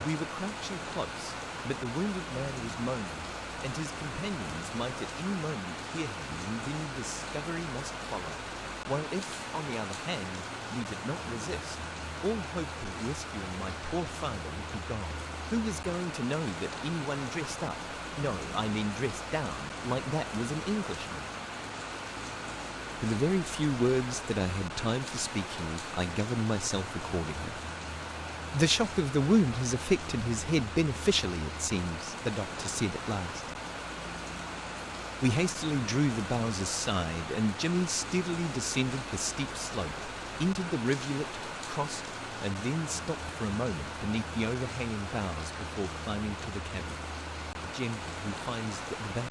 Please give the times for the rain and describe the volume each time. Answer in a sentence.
You can hear the rain from 0.0 to 49.2 s, at a steady volume.